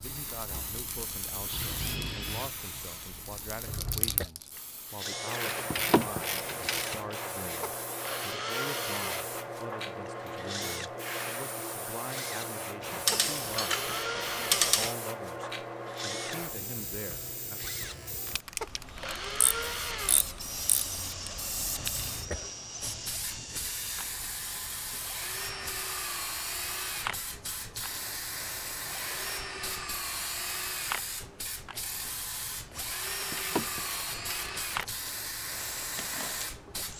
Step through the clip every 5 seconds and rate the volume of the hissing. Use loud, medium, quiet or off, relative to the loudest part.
medium, loud, loud, loud, loud, loud, loud, loud.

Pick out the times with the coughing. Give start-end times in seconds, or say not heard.
3.6-4.3, 21.8-22.5.